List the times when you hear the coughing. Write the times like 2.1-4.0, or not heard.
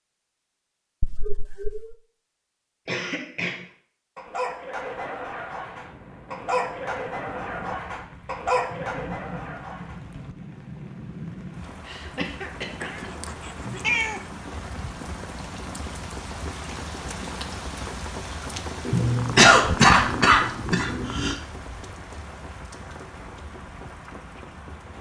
2.9-3.6, 11.8-13.1, 18.9-21.4.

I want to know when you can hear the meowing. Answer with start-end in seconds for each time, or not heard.
1.0-1.9, 12.8-14.2, 18.9-21.4.